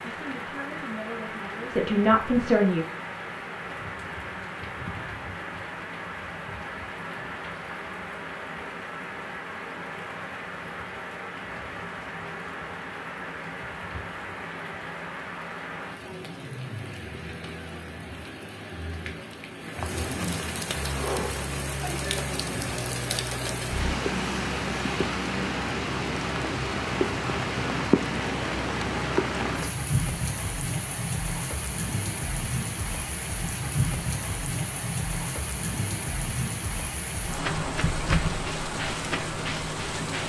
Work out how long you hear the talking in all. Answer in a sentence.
The talking can be heard for 3 seconds in total.